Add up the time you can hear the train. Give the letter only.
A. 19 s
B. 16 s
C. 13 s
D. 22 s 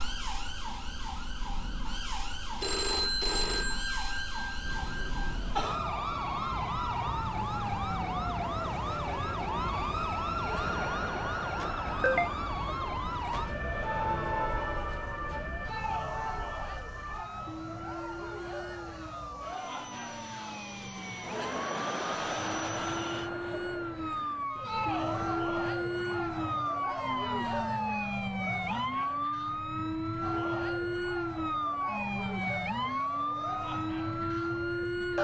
A.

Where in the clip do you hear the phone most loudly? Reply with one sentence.
The loudest moment of the phone is at 3 seconds.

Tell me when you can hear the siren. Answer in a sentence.
You can hear the siren from 0.0 to 35.1 s.